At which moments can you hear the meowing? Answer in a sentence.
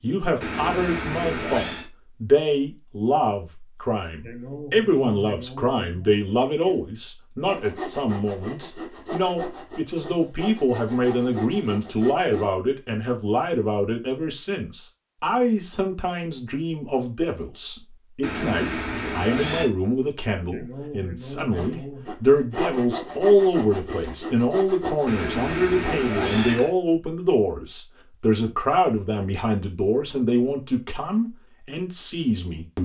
You can hear the meowing from 0.4 to 1.9 s, from 18.2 to 19.7 s and from 25.1 to 26.7 s.